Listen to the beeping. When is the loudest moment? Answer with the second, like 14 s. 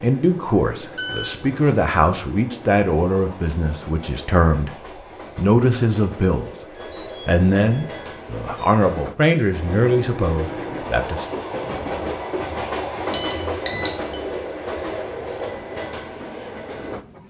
14 s.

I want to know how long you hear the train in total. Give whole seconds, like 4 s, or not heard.
17 s.